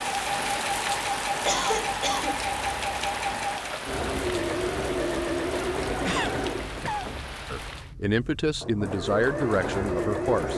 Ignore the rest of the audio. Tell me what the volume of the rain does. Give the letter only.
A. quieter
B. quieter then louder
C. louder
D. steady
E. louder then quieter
A.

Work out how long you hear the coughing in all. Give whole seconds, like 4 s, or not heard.
2 s.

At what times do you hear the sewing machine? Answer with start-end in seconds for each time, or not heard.
0.0-10.5.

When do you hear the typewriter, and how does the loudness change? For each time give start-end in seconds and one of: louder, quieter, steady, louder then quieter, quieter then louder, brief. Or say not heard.
not heard.